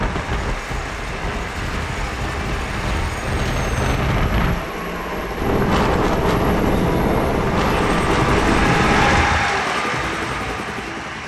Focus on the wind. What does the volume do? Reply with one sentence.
The loudness of the wind goes up.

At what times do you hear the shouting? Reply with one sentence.
You can't hear the shouting here.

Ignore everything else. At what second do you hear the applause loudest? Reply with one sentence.
The volume of the applause peaks at 9 seconds.